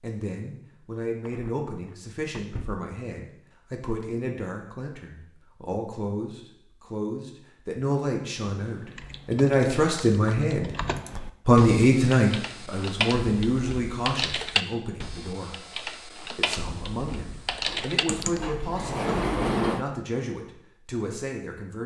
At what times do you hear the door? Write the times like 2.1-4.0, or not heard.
1.2-2.8, 17.6-19.9.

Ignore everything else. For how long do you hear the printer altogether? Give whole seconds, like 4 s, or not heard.
not heard.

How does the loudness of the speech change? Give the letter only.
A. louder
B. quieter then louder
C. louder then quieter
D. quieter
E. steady
C.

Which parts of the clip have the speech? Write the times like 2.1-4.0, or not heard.
0.0-10.7, 11.4-15.6, 16.4-21.8.